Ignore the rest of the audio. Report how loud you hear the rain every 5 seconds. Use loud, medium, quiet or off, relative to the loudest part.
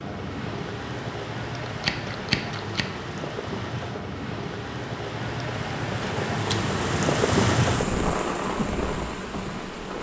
medium, loud.